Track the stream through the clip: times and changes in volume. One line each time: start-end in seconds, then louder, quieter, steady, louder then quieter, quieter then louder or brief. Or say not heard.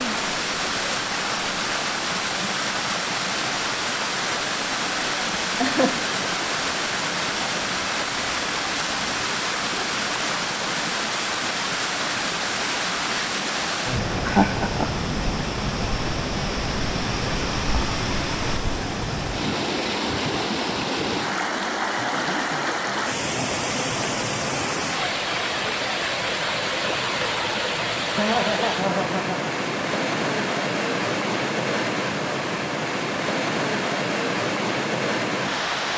0.0-35.9 steady.